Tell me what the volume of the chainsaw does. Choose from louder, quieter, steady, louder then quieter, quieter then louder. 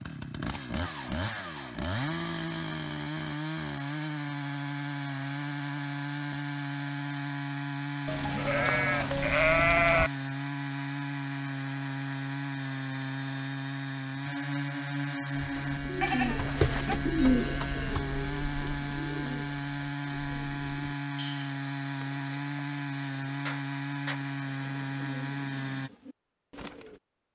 steady.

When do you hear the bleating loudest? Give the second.
10 s.